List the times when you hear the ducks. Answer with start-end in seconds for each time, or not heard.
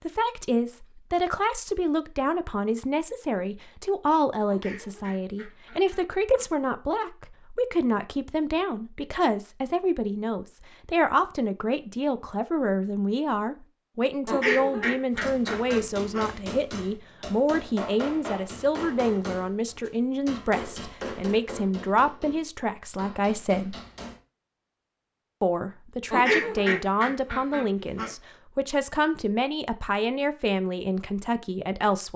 4.5-6.5, 14.2-16.2, 26.1-28.1.